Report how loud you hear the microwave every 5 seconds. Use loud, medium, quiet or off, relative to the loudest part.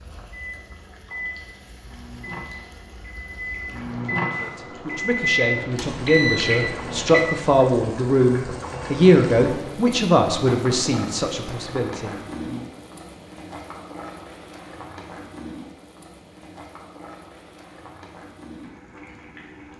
medium, loud, off, off.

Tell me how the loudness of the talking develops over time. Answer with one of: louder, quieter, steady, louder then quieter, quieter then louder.
louder then quieter.